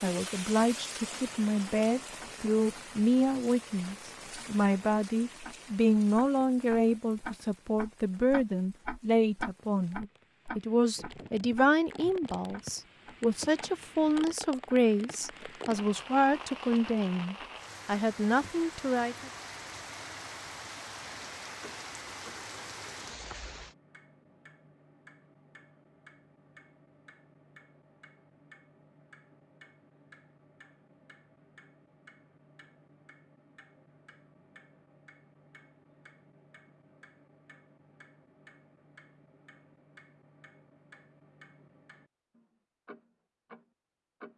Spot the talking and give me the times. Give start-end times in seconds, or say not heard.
0.0-19.3.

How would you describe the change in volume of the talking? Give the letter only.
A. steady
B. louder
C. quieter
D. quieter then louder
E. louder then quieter
A.